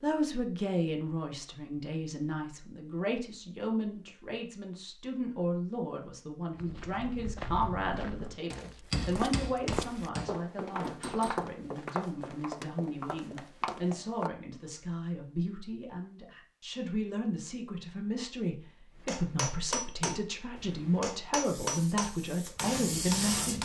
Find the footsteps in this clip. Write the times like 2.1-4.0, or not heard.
6.5-14.3.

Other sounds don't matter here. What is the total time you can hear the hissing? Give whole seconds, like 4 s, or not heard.
2 s.